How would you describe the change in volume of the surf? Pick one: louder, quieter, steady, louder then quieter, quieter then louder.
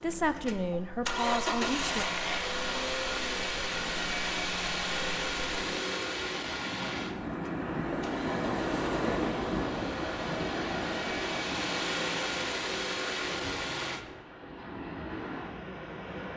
louder then quieter.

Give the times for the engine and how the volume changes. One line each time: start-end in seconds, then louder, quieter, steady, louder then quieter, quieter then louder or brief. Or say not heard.
0.0-14.1 quieter then louder.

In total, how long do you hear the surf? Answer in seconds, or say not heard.
16 s.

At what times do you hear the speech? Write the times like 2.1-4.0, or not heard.
0.0-2.0.